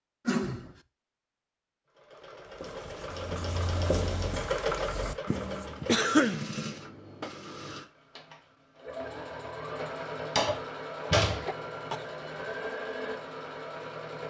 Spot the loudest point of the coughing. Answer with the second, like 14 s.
6 s.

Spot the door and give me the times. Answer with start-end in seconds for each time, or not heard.
10.2-11.4.